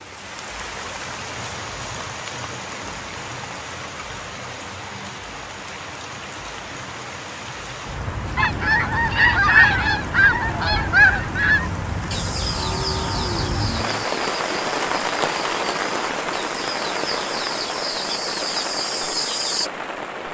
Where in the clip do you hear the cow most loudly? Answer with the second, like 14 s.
13 s.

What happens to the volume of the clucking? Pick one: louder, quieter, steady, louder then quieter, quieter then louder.
quieter then louder.